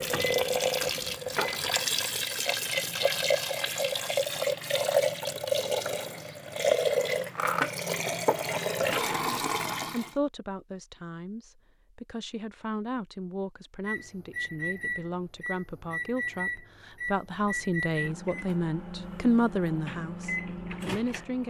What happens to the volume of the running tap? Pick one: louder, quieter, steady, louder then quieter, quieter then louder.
steady.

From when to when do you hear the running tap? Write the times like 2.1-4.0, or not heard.
0.0-10.1.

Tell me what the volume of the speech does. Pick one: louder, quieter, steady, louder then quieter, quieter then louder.
louder.